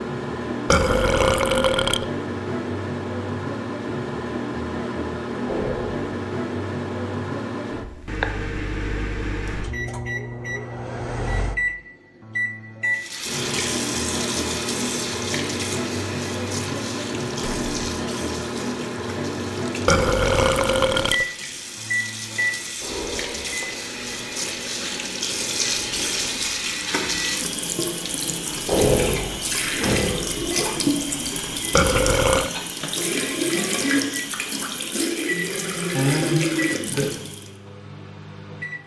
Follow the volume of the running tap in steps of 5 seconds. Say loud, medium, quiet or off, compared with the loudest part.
off, off, medium, medium, medium, loud, loud, loud.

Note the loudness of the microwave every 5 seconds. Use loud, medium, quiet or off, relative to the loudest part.
loud, loud, loud, loud, loud, medium, medium, medium.